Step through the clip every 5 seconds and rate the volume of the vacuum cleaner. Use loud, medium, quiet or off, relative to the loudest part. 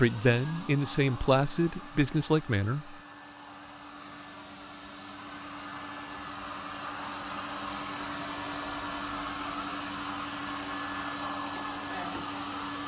medium, loud, loud.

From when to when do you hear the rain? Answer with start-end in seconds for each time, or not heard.
not heard.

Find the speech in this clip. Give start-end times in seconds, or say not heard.
0.0-3.0.